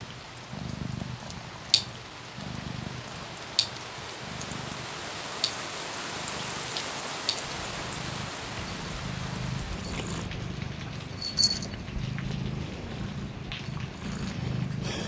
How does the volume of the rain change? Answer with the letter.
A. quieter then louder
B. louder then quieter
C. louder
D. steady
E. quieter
B.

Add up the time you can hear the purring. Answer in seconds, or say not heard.
15 s.